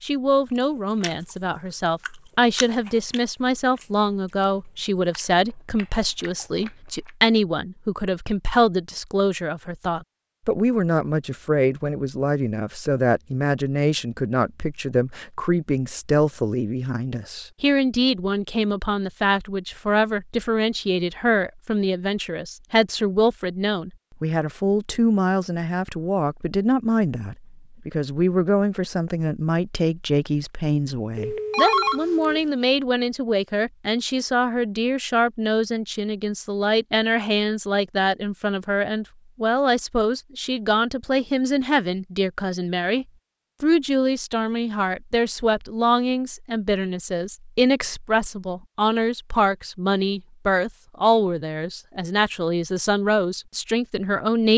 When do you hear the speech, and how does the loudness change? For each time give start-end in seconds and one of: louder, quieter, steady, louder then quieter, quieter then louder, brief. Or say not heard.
0.0-54.5 steady.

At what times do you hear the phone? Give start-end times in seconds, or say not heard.
31.1-32.4.